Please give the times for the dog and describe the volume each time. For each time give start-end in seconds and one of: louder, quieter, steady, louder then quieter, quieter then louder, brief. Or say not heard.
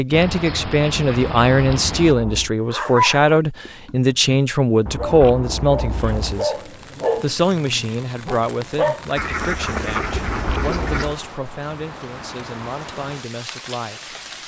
2.7-9.0 louder then quieter.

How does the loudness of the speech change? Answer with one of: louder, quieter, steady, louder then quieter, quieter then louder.
quieter.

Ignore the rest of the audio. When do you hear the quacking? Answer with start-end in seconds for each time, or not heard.
0.1-2.1, 9.2-11.2.